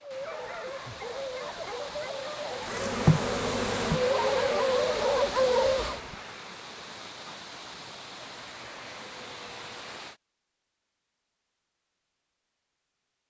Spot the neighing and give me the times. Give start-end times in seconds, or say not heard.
not heard.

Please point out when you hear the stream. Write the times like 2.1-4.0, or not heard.
0.0-10.2.